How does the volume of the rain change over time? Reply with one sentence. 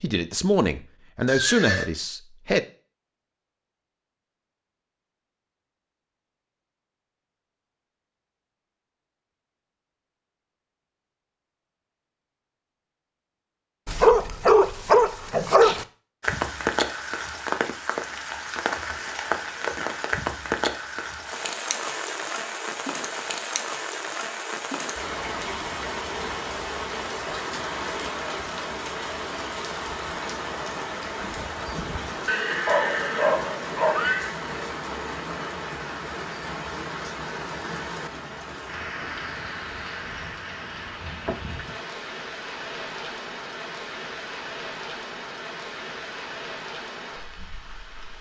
The volume of the rain goes down.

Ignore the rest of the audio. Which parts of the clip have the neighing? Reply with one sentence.
The neighing can be heard from 1.2 to 1.9 s and from 32.2 to 34.4 s.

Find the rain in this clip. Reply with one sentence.
You can hear the rain from 16.2 to 48.1 s.